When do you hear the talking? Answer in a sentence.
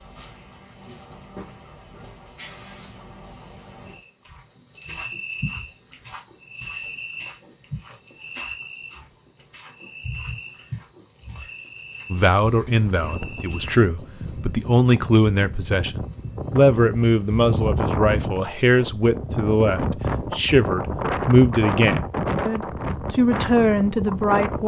The talking can be heard from 12.1 to 24.6 s.